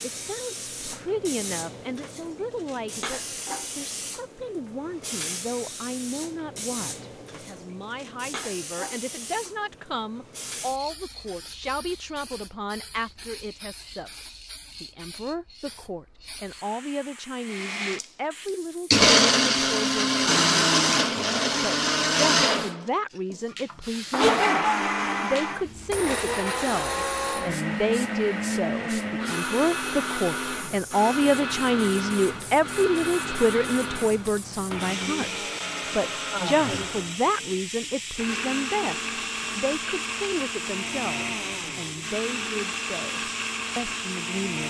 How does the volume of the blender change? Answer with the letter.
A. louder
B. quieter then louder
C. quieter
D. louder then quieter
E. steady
C.